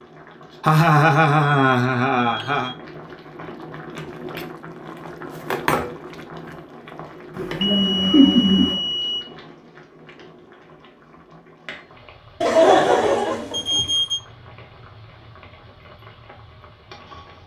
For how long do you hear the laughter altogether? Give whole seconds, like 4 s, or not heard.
5 s.